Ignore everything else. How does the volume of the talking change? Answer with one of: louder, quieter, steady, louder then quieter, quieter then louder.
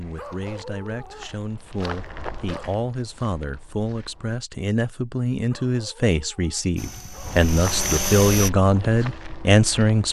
louder.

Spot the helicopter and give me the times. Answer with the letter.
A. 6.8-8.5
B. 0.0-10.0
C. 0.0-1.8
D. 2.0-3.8
A.